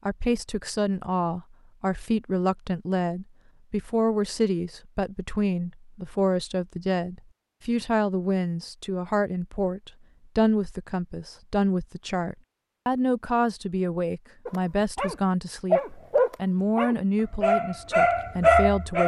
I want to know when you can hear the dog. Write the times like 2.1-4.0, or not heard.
14.4-19.0.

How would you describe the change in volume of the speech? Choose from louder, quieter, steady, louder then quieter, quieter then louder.
steady.